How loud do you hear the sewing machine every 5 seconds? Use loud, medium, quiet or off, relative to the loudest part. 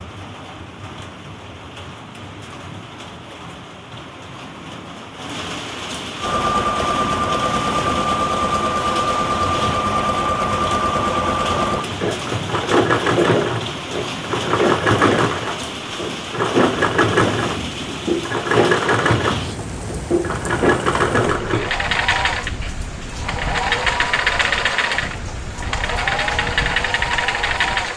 off, loud, loud, loud, loud, loud.